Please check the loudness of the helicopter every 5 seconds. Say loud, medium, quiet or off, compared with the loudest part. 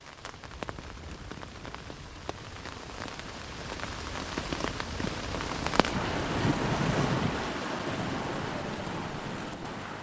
medium, loud.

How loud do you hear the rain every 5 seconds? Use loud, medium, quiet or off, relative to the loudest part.
medium, loud.